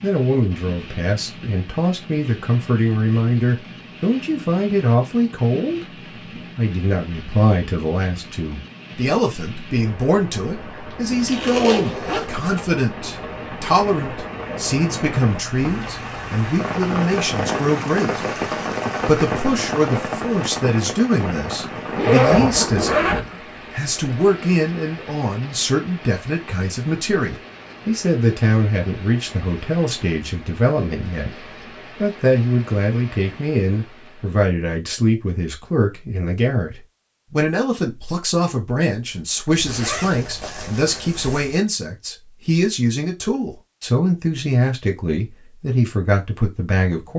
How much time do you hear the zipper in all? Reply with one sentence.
The zipper can be heard for 5 seconds in total.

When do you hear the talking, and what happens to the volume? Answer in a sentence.
The talking can be heard from 0.0 to 18.2 s, at a steady volume; and from 19.1 to 47.1 s, at a steady volume.